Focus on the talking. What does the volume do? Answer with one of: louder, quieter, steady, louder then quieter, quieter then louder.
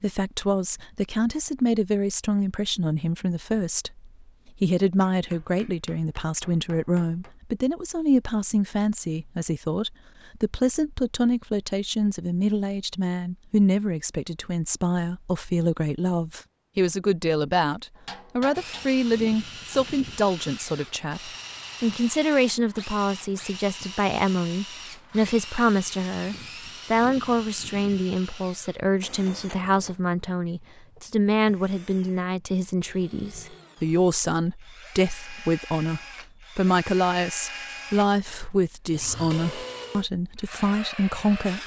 steady.